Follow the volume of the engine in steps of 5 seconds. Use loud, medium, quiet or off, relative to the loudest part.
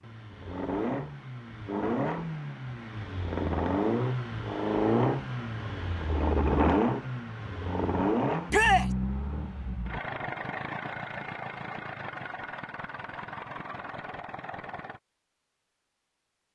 loud, loud, medium, off.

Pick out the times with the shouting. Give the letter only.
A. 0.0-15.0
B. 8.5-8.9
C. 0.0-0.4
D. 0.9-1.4
B.